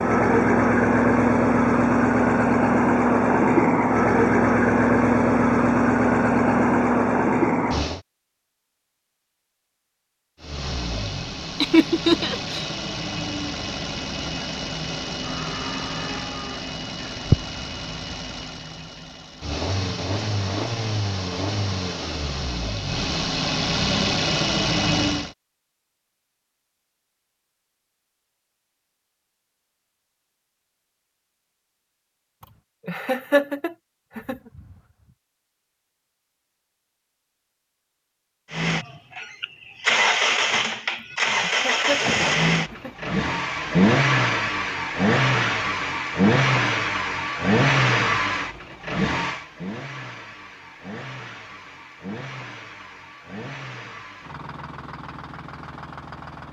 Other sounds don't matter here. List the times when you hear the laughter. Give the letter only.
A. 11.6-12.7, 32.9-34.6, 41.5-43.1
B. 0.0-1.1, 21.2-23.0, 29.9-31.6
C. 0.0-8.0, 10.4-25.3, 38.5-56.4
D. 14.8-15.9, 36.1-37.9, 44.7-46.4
A.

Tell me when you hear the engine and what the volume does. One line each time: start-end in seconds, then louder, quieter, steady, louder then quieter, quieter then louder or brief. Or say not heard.
0.0-8.0 steady
10.4-25.3 louder
38.5-56.4 quieter.